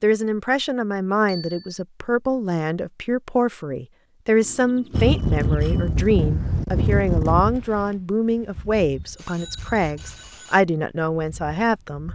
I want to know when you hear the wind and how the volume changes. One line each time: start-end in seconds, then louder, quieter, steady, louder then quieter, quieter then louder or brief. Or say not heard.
4.9-12.1 quieter.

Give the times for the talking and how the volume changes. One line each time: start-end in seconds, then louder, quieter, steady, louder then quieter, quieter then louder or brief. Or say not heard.
0.0-12.1 steady.